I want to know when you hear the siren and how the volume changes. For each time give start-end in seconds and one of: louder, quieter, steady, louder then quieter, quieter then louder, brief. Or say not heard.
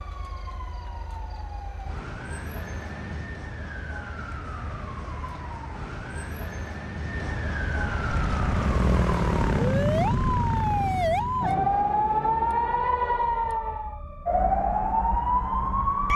0.0-16.1 louder.